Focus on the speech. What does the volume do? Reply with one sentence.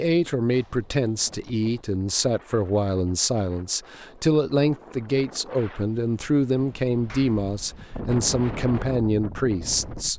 The loudness of the speech stays about the same.